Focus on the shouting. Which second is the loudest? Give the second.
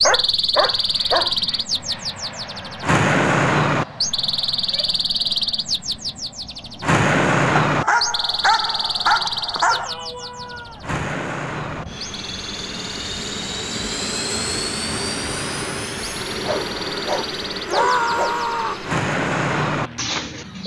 18 s.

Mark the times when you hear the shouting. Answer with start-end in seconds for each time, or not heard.
4.5-5.0, 9.7-10.8, 17.6-18.9.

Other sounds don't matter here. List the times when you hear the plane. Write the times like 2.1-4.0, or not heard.
0.0-20.6.